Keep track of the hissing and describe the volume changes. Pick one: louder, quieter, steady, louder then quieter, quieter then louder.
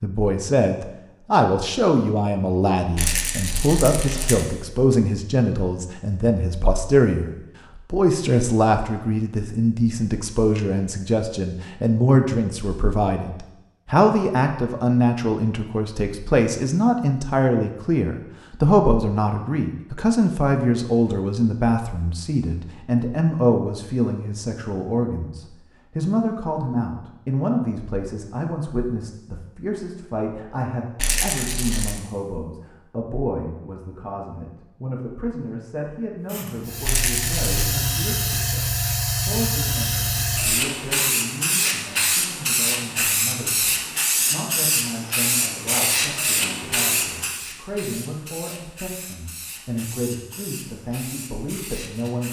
quieter.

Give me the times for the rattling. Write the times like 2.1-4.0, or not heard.
3.0-4.5, 30.9-32.0, 36.9-37.7.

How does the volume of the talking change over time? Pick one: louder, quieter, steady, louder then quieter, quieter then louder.
quieter.